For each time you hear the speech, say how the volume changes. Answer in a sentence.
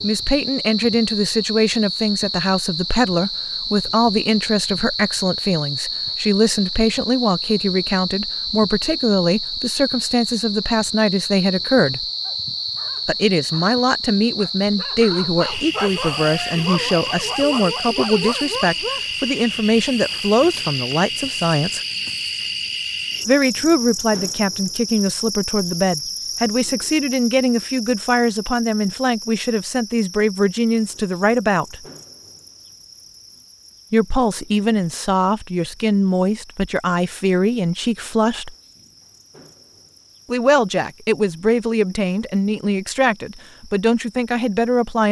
The speech can be heard from 0.0 to 12.1 s, at a steady volume; from 13.1 to 21.8 s, at a steady volume; from 23.2 to 31.8 s, at a steady volume; from 33.9 to 38.5 s, at a steady volume; and from 40.2 to 45.0 s, at a steady volume.